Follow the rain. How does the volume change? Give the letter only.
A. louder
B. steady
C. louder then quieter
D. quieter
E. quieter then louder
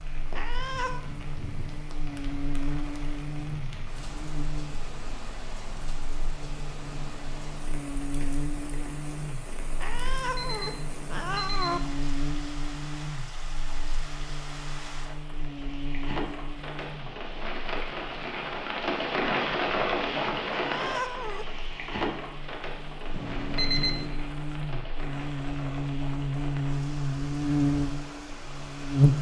C.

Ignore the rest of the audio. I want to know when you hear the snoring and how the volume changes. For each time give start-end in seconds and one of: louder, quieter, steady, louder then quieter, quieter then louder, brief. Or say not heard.
not heard.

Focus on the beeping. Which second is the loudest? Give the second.
24 s.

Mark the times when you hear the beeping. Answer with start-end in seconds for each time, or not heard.
9.9-11.9, 23.1-24.1.